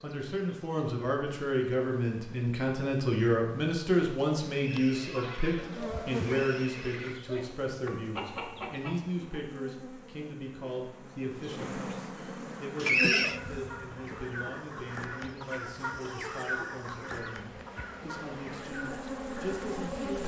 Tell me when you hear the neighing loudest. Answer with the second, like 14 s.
13 s.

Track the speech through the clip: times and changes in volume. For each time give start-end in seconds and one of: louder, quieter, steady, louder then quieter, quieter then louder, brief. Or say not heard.
0.0-20.2 quieter.